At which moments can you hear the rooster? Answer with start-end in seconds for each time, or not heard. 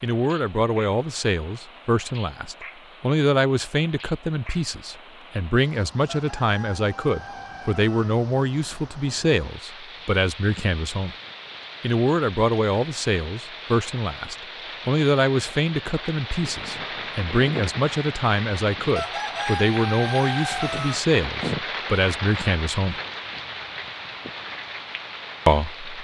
6.0-8.1, 18.9-20.9.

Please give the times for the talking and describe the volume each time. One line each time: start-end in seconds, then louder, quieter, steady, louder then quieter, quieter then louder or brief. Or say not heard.
0.0-11.2 steady
11.8-22.9 steady
25.4-25.9 brief.